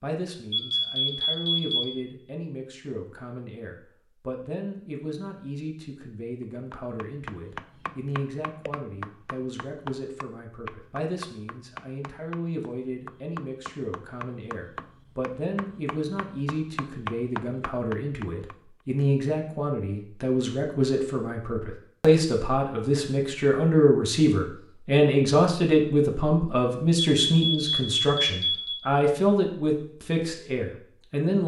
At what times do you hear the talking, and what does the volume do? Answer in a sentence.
The talking can be heard from 0.0 to 31.4 s, getting louder.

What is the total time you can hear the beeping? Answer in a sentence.
The beeping can be heard for 3 seconds in total.